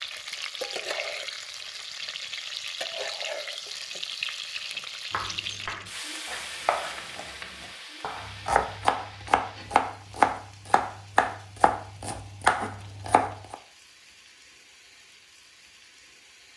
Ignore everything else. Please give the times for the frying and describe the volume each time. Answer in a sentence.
You can hear the frying from 0.0 to 16.5 s, getting quieter.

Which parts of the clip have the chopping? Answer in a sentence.
The chopping can be heard from 5.1 to 13.6 s.